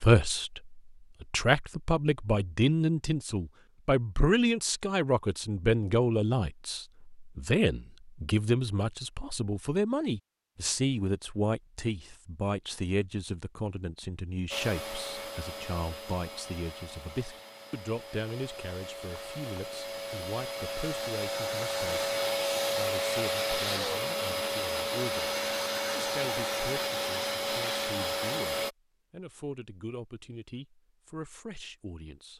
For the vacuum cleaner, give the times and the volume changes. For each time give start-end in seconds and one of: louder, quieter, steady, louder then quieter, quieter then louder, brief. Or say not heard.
14.5-28.7 louder.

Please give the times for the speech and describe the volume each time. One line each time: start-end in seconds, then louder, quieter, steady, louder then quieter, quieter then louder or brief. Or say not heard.
0.0-22.1 quieter
22.8-25.3 brief
25.9-32.3 steady.